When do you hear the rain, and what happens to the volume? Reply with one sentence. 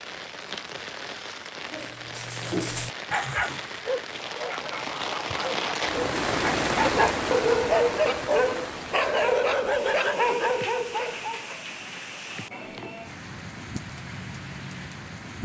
The rain can be heard from 0.0 to 15.4 s, getting louder then quieter.